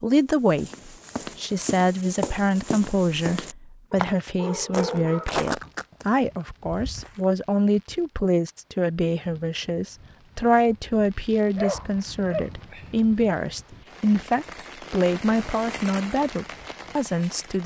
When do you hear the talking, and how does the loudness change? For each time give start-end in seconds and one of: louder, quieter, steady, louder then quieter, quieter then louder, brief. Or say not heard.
0.0-17.6 steady.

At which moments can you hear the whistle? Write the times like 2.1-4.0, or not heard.
not heard.